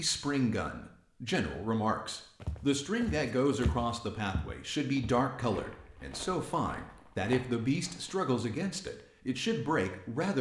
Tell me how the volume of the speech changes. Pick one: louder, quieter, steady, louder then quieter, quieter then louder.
steady.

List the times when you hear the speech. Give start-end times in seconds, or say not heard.
0.0-10.3.